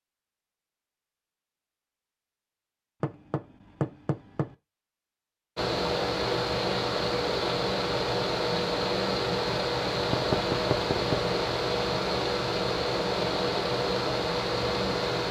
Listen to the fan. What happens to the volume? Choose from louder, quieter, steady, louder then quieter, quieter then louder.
steady.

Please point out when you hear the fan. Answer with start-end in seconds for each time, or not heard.
5.5-15.2.